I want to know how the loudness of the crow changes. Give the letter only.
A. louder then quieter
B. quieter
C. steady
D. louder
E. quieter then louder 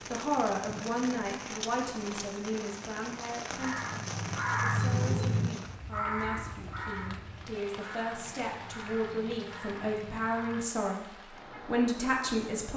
B.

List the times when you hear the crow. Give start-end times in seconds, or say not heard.
3.5-10.7.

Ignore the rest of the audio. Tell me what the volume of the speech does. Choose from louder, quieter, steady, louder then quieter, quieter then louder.
quieter then louder.